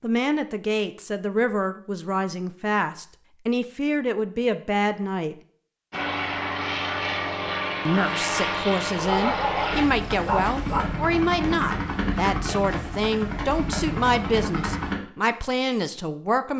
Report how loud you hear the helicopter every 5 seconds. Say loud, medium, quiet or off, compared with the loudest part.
off, loud, loud, off.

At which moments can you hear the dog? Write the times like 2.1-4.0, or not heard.
8.9-10.9.